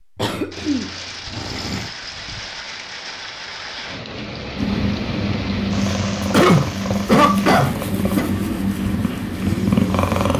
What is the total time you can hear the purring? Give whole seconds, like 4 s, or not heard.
6 s.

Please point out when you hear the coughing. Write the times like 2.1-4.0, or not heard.
0.1-1.9, 6.3-8.3.